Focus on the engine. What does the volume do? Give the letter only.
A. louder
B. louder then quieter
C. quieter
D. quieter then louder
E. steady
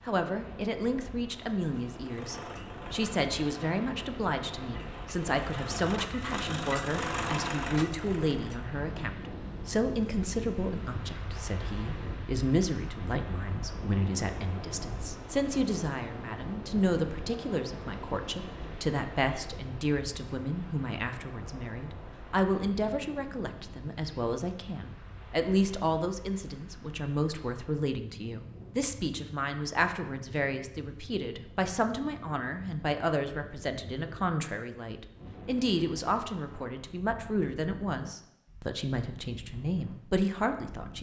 A.